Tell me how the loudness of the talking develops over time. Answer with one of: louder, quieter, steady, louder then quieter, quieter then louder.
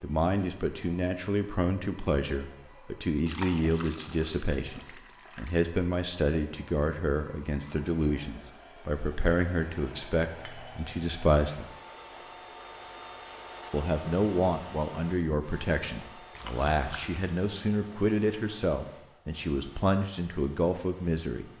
steady.